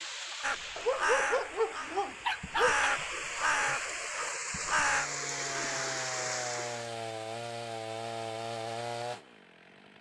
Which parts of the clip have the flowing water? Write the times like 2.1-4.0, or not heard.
0.0-6.9.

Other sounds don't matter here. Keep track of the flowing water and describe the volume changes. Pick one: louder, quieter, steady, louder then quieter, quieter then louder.
louder.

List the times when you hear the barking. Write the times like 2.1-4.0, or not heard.
0.8-2.9.